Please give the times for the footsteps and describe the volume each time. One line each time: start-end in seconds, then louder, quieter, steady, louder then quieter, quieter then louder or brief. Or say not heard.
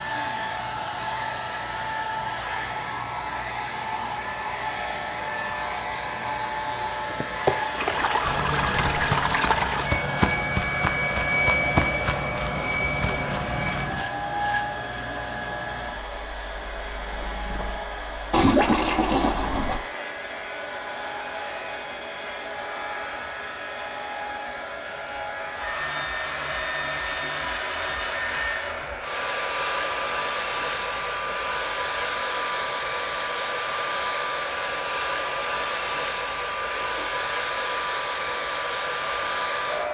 7.0-14.1 quieter.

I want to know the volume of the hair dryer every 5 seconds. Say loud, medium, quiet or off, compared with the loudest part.
loud, loud, loud, medium, medium, loud, loud, loud.